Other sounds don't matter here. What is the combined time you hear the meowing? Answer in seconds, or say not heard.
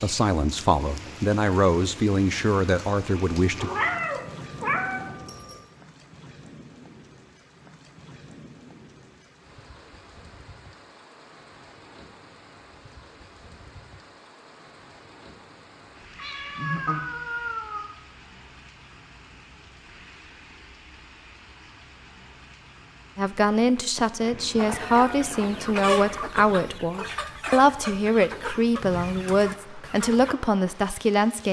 6 s.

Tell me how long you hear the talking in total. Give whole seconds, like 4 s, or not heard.
12 s.